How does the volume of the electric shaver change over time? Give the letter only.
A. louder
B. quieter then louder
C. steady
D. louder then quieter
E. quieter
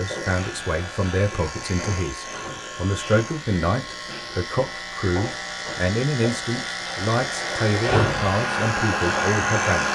A.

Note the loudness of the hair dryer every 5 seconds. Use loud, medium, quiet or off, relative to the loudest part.
off, loud.